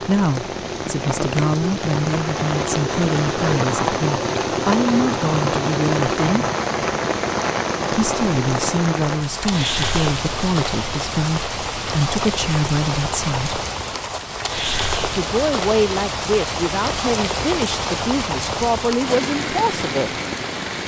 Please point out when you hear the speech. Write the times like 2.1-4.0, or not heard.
0.0-6.5, 7.9-13.6, 15.1-20.1.